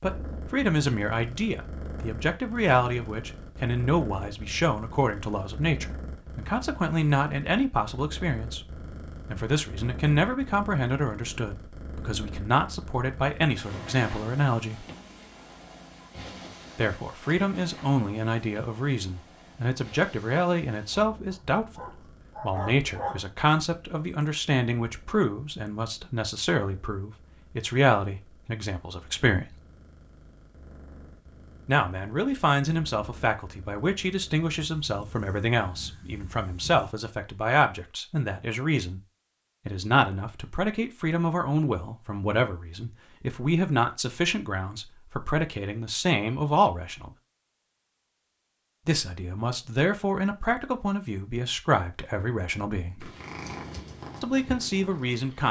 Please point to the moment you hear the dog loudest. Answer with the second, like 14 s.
23 s.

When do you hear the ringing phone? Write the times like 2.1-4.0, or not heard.
not heard.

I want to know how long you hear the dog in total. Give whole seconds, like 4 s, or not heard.
2 s.